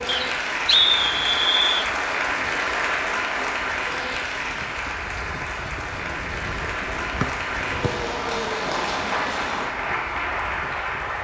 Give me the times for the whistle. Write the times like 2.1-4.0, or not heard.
0.1-1.9, 7.2-7.9.